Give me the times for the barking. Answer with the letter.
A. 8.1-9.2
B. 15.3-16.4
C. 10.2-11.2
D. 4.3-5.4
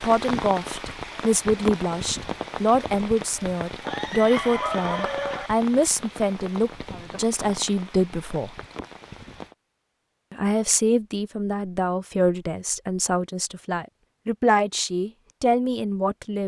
D.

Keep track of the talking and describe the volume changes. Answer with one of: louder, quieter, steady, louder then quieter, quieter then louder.
steady.